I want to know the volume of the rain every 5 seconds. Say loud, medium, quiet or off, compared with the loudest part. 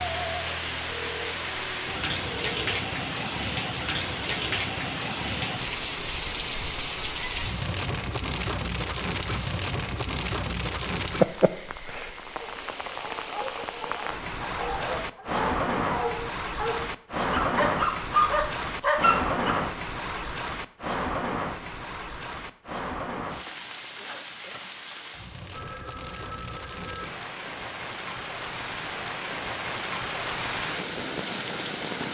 loud, loud, loud, loud, medium, medium, loud.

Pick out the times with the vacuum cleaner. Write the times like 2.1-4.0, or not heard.
not heard.